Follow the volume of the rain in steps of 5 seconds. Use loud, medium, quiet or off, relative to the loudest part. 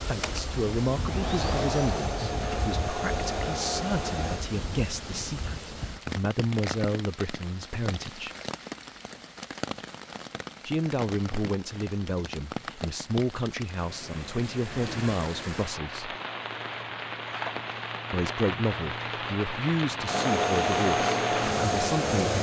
medium, medium, medium, loud, loud.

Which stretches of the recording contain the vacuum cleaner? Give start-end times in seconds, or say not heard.
0.2-4.5, 20.1-22.3.